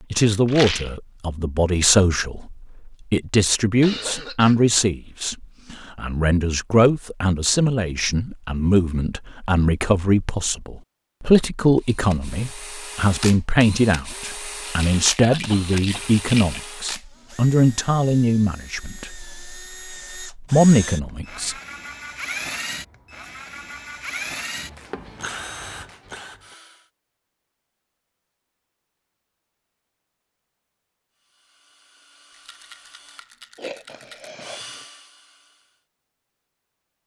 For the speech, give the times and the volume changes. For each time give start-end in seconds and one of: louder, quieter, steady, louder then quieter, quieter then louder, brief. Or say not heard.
0.1-21.6 steady.